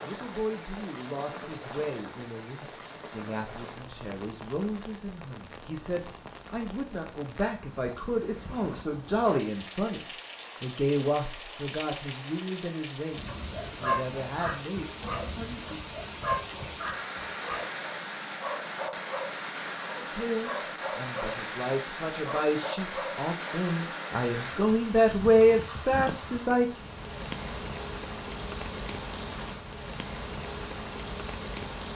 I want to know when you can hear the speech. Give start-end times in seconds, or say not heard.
0.0-15.8, 19.9-26.6.